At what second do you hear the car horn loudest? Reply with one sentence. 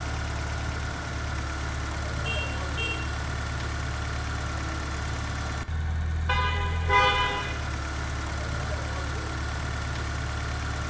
The loudest moment of the car horn is at 7 seconds.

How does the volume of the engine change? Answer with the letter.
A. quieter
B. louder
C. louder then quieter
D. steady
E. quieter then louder
D.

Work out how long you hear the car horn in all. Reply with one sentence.
The car horn can be heard for 2 seconds in total.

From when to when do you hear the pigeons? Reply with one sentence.
You can't hear the pigeons here.